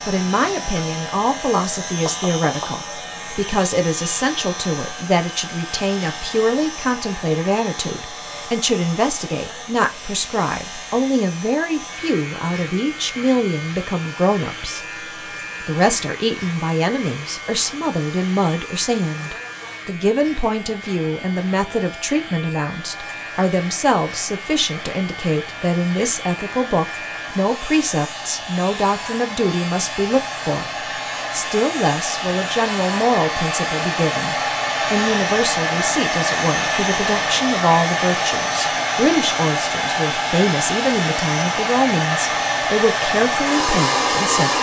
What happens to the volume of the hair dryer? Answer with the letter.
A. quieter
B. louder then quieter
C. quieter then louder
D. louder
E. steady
D.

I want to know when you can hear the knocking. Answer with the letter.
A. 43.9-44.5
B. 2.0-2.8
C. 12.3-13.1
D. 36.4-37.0
B.